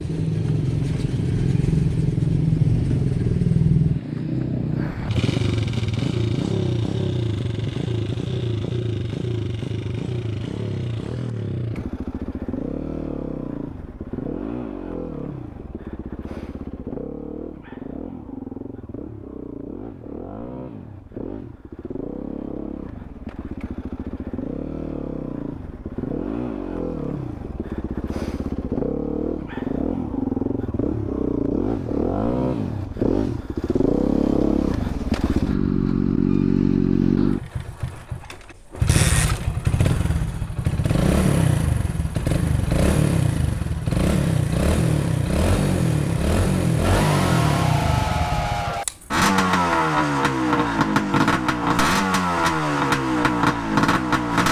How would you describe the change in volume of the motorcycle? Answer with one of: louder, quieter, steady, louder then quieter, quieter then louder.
quieter then louder.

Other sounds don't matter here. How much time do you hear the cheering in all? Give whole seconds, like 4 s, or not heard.
2 s.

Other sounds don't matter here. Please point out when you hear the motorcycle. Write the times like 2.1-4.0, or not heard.
0.0-54.4.